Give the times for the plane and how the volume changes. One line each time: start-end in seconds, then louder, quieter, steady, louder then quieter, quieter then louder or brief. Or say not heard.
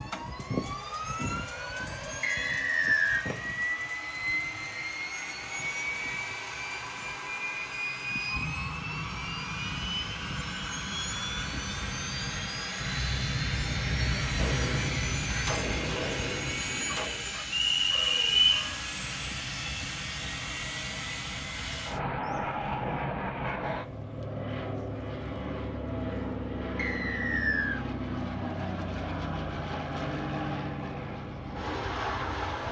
0.0-32.6 steady.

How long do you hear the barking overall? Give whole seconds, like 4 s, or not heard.
not heard.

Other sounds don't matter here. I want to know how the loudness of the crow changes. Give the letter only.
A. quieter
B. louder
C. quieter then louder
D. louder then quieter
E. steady
D.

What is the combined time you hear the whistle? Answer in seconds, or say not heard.
3 s.